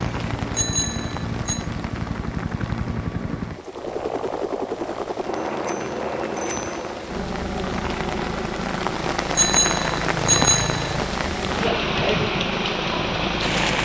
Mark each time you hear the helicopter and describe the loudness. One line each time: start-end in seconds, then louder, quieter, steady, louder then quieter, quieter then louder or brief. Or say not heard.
0.0-13.8 steady.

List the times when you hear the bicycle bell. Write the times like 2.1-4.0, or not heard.
0.6-1.6, 5.7-6.7, 9.3-10.9.